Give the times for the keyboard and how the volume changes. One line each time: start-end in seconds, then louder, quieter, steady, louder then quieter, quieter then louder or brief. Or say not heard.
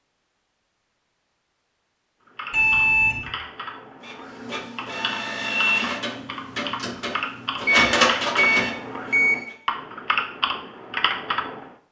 2.2-11.7 louder.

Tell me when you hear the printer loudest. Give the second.
8 s.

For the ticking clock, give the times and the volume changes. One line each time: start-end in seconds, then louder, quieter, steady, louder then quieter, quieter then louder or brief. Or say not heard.
not heard.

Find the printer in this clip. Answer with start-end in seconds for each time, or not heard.
4.0-9.6.